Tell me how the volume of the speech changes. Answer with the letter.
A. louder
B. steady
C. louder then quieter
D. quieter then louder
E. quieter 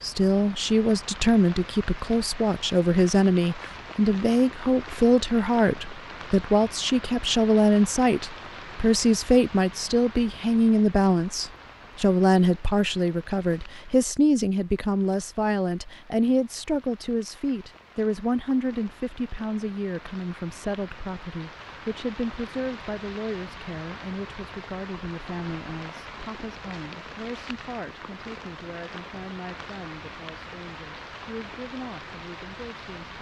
E.